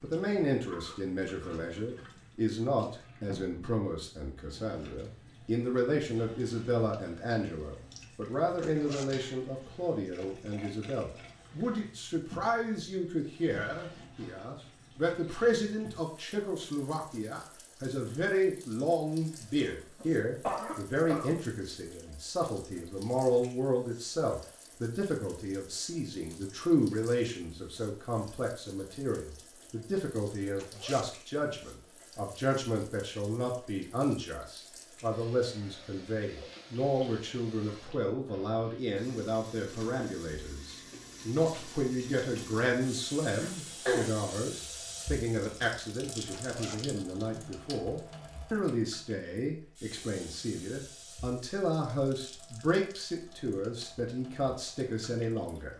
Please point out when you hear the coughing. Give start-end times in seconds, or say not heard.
19.6-21.3, 43.4-44.1.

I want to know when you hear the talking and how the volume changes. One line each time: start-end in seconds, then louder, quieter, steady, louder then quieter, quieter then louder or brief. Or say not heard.
0.0-55.7 steady.